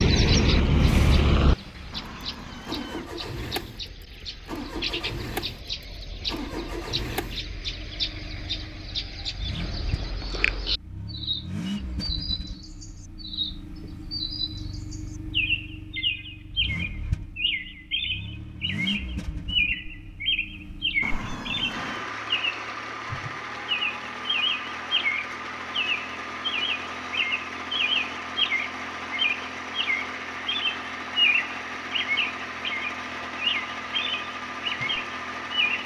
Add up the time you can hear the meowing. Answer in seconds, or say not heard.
2 s.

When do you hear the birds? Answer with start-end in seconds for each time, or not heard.
0.0-35.8.